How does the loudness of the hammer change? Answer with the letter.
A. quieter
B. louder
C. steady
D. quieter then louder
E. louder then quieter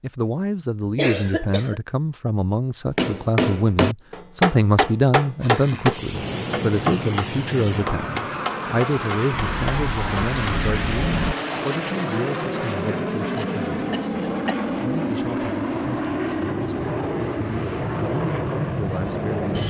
A.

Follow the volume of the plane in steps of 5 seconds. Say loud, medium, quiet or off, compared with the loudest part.
off, medium, loud, loud.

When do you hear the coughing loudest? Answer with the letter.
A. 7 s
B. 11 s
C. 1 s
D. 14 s
C.